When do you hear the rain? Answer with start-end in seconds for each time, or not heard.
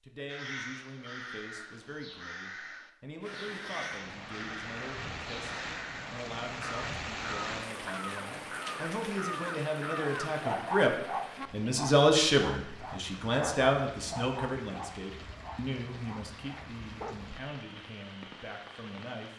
3.2-19.3.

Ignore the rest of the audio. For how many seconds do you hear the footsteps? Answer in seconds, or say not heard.
not heard.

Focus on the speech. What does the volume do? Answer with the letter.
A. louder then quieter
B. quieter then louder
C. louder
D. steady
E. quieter
A.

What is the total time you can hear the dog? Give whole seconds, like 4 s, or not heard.
7 s.